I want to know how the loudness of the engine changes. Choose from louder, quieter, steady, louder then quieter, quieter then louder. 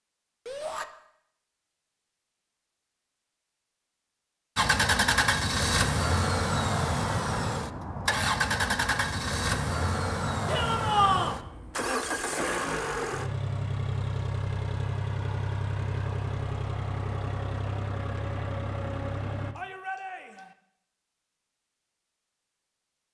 quieter.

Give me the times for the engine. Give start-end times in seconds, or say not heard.
4.5-19.6.